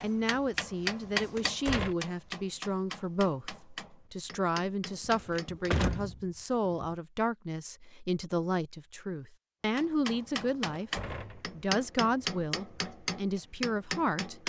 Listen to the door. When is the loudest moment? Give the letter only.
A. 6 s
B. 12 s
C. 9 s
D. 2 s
A.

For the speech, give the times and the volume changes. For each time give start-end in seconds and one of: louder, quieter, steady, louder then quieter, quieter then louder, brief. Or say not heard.
0.0-14.4 steady.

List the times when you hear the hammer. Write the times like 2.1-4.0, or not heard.
0.0-6.0, 9.8-14.4.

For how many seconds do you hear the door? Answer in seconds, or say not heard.
3 s.